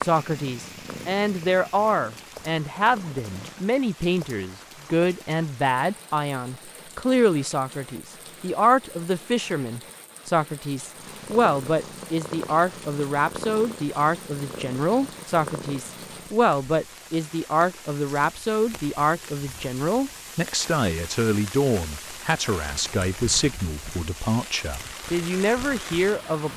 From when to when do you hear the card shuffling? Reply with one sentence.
You can't hear the card shuffling here.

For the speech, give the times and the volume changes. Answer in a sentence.
The speech can be heard from 0.0 to 26.5 s, at a steady volume.